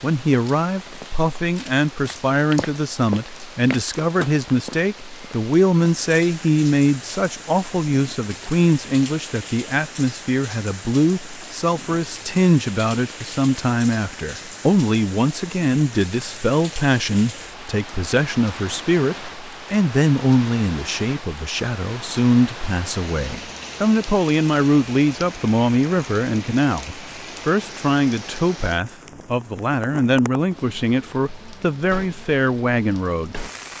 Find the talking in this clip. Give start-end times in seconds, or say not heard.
0.0-33.7.